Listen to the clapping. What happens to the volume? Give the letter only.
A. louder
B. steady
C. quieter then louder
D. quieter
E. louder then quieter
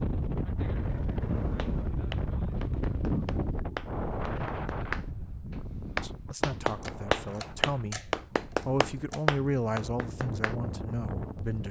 A.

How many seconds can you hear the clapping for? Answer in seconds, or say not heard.
9 s.